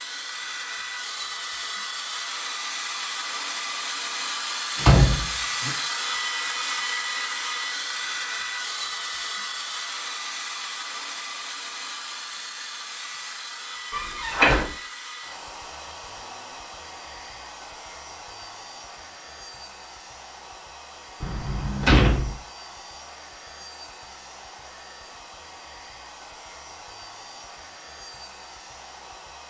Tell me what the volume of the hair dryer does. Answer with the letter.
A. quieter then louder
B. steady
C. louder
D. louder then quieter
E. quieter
E.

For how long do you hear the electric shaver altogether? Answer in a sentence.
You can't hear the electric shaver here.